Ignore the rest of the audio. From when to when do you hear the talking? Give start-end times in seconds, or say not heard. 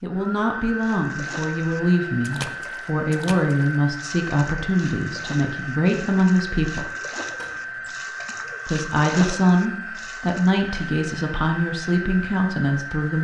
0.0-6.9, 8.7-13.1.